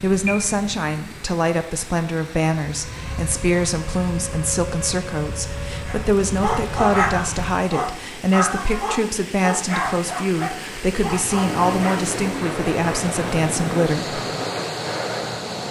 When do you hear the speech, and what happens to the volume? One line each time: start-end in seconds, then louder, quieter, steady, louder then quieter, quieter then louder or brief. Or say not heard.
0.0-14.2 steady.